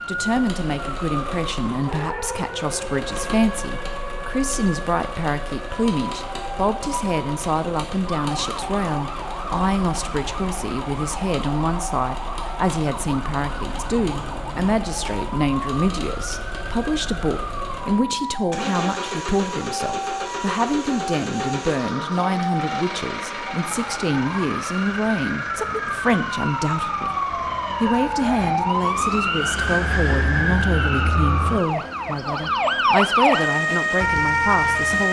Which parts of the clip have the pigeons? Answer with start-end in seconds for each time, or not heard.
not heard.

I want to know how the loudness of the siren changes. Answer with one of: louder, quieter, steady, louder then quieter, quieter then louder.
louder.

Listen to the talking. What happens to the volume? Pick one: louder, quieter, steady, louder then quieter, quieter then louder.
steady.